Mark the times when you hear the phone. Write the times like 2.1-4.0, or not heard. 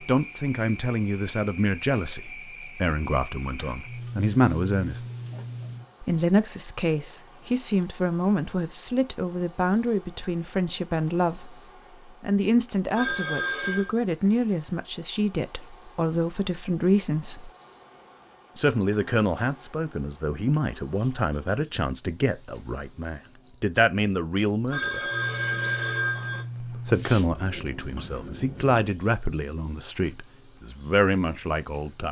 12.9-13.9, 24.7-26.4.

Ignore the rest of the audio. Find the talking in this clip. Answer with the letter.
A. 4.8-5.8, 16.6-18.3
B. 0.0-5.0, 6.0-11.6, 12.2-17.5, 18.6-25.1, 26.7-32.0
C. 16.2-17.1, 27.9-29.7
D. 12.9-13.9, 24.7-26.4
B.